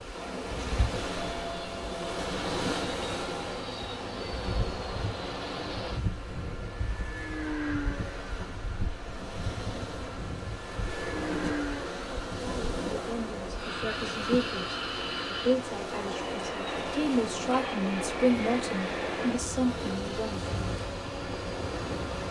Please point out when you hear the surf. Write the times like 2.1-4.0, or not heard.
0.0-22.2.